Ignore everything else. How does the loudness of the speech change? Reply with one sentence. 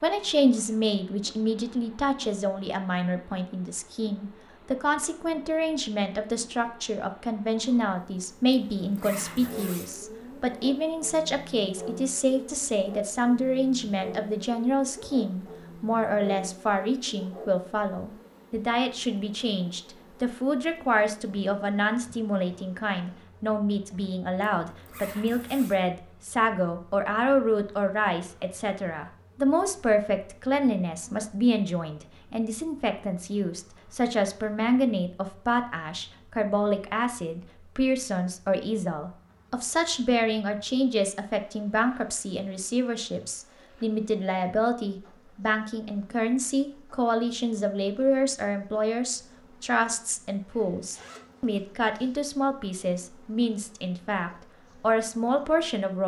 The loudness of the speech stays about the same.